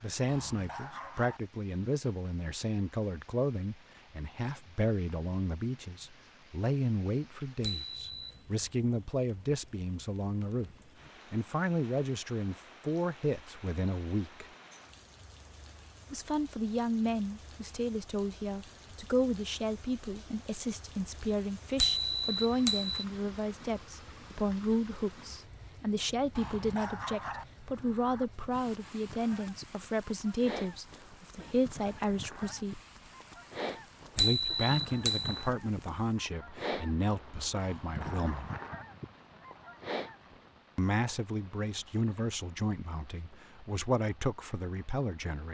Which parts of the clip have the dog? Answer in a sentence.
The dog can be heard from 0.2 to 1.4 s, from 26.4 to 27.4 s and from 37.6 to 38.7 s.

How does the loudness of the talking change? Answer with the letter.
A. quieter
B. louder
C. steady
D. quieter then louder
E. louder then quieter
C.